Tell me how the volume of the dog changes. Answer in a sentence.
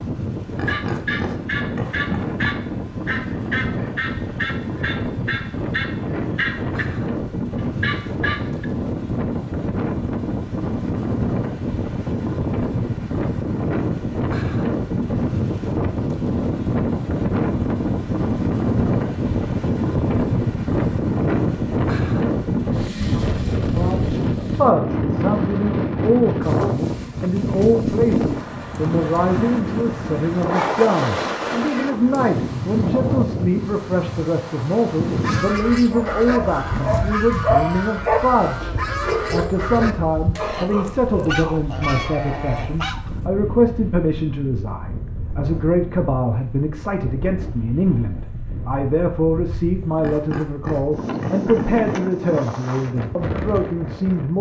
The loudness of the dog goes up, then down.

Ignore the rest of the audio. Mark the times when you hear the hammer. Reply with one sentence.
The hammer can't be heard in this clip.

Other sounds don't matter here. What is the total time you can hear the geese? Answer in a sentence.
You can hear the geese for 16 seconds altogether.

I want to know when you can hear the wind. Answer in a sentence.
The wind can be heard from 0.0 to 54.3 s.